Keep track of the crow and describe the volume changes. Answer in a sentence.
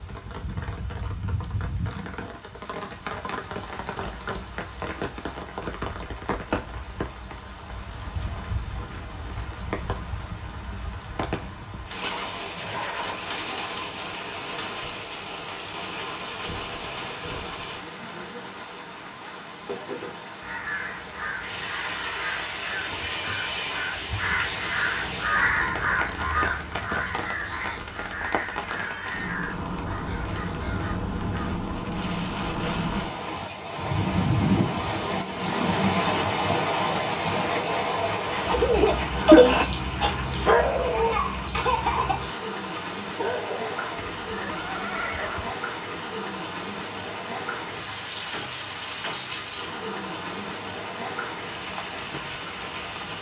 The volume of the crow goes up, then down.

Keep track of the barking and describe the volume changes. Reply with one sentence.
The loudness of the barking goes up, then down.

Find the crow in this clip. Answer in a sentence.
The crow can be heard from 20.4 to 31.7 s.